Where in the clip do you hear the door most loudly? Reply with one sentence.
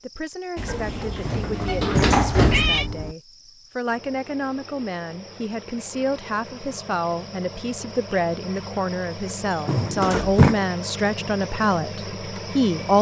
The volume of the door peaks at 2 seconds.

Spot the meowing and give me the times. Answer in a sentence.
The meowing can be heard from 1.2 to 2.9 s and from 9.7 to 10.7 s.